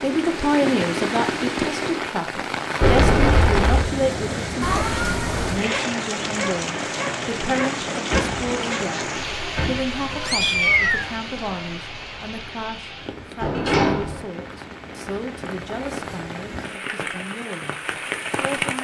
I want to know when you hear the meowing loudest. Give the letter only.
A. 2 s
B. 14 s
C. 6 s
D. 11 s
D.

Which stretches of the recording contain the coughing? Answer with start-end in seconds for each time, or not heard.
not heard.